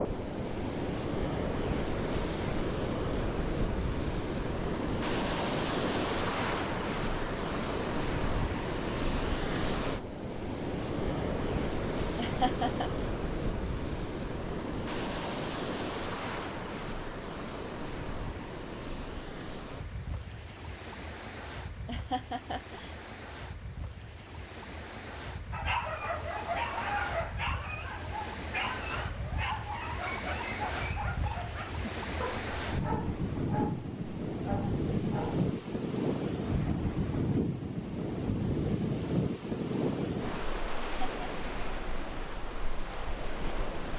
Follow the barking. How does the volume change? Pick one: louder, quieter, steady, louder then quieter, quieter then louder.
quieter.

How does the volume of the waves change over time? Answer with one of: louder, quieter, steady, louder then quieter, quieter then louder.
quieter then louder.